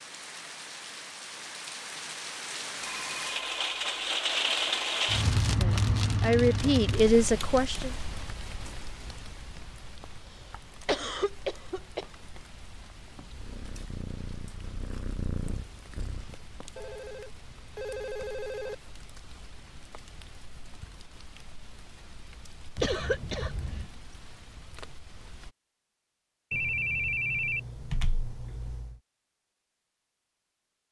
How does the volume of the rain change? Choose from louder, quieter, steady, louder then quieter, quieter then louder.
quieter.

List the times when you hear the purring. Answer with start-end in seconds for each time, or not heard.
13.1-16.4.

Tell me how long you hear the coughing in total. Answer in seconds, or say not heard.
4 s.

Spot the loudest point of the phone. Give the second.
27 s.